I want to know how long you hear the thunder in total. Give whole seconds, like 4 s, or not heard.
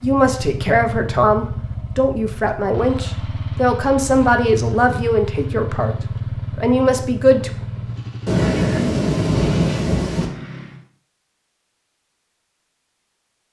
2 s.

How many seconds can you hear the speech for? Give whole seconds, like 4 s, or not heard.
7 s.